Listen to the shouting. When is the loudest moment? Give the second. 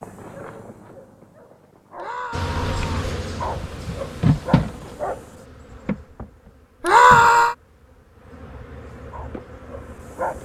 7 s.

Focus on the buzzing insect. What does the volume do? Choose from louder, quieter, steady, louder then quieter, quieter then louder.
louder then quieter.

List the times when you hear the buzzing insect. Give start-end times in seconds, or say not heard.
2.3-10.4.